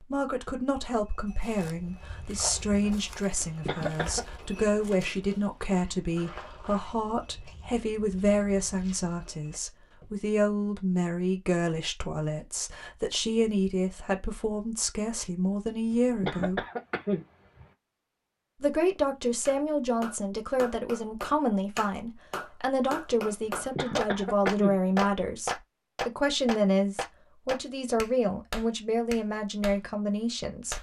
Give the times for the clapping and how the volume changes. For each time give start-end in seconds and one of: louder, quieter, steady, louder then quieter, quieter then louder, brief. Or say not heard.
19.4-29.8 louder then quieter.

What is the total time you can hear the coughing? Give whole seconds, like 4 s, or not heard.
4 s.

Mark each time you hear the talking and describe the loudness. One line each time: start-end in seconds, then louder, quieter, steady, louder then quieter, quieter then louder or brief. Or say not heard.
0.0-16.6 steady
18.6-30.7 steady.